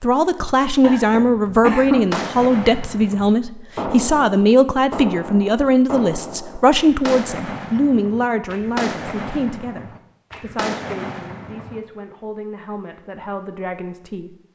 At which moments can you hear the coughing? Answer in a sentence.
The coughing can be heard from 0.8 to 2.0 s.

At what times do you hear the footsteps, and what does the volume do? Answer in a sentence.
The footsteps can't be heard in this clip.